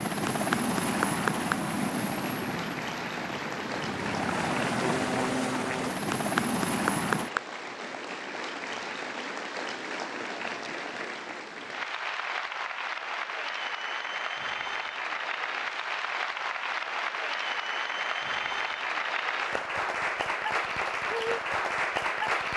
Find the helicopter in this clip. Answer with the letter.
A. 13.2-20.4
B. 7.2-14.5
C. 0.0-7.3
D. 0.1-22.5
C.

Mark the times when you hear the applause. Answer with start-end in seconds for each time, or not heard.
0.1-22.5.